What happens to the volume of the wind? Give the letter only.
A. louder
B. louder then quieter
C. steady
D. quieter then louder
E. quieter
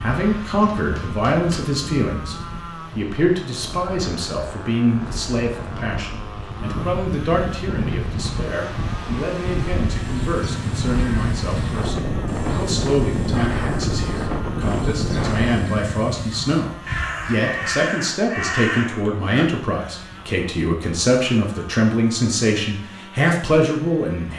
A.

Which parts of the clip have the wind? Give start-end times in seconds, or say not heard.
0.0-15.7.